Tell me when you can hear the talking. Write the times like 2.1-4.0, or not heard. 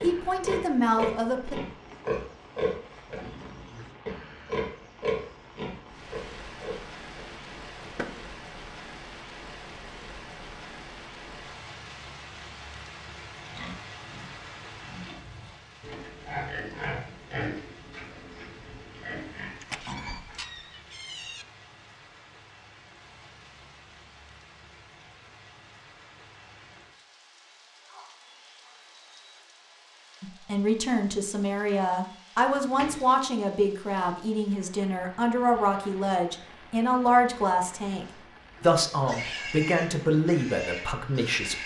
0.0-1.6, 30.2-41.6.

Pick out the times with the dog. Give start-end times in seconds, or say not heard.
not heard.